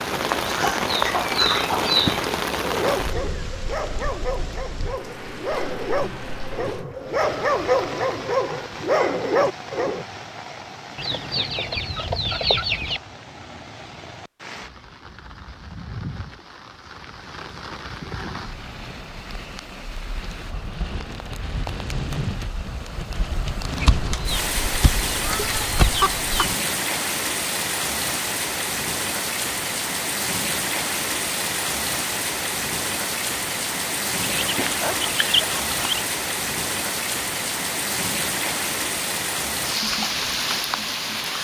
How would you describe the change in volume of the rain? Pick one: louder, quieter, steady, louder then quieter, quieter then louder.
quieter then louder.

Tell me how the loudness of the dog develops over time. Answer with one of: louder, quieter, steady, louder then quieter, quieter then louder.
louder.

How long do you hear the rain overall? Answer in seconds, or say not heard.
41 s.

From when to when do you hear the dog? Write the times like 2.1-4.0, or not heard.
2.6-10.1.